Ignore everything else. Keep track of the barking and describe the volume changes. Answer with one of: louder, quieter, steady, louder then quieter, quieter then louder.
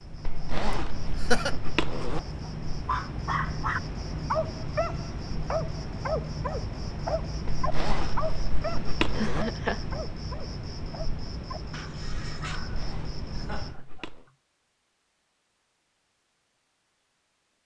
quieter.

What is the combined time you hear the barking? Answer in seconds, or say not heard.
11 s.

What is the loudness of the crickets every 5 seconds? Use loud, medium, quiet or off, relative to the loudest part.
loud, loud, loud, off.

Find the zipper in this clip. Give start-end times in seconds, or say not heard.
0.2-2.2, 7.5-9.4, 12.6-14.2.